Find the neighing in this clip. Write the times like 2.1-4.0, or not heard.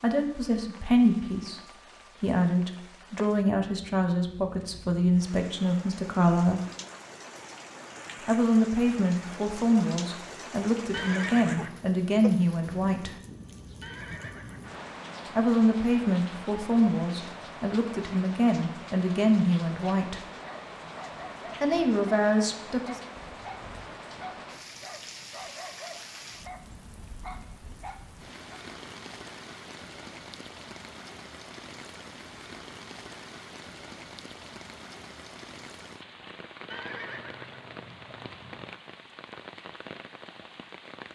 10.9-11.8, 13.8-14.8, 36.7-38.7.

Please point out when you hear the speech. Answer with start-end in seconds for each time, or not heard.
0.0-6.6, 8.2-13.2, 15.3-20.2, 21.6-23.0.